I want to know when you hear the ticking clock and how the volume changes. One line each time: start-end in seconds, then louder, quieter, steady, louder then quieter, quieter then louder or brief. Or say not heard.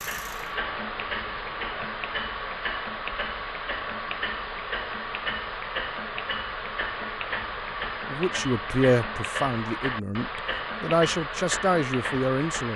0.0-12.7 steady.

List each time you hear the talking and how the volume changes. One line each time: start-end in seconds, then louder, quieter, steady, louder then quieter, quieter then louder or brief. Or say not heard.
8.1-12.7 quieter then louder.